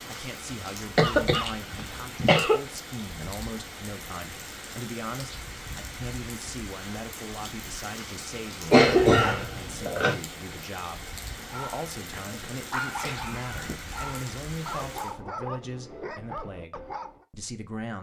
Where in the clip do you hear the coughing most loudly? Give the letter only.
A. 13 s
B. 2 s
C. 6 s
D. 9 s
D.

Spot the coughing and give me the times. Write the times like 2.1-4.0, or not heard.
0.9-2.5, 8.7-10.2, 12.1-13.9.